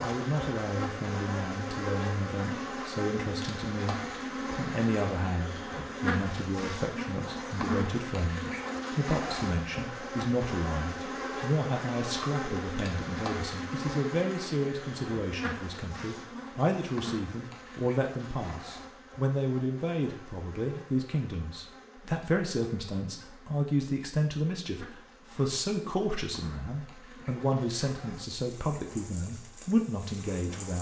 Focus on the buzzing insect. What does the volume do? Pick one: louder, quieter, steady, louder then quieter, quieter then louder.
quieter.